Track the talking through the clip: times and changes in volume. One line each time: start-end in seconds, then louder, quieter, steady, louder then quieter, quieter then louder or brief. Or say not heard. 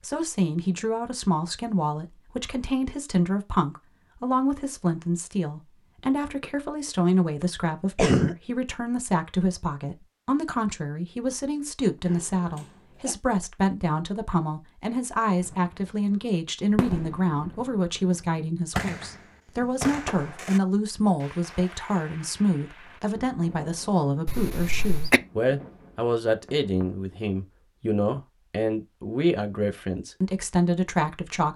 0.0-31.5 steady.